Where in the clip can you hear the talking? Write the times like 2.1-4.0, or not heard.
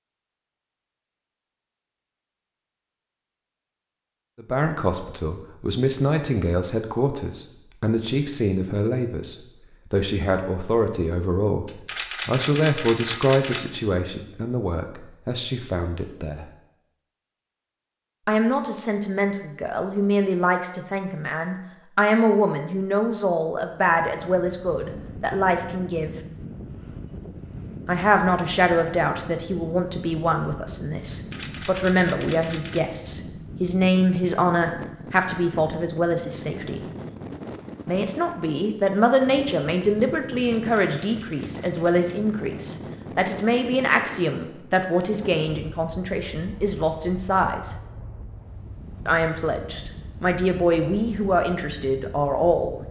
4.3-16.4, 18.2-26.1, 27.9-36.8, 37.9-47.8, 49.0-52.8.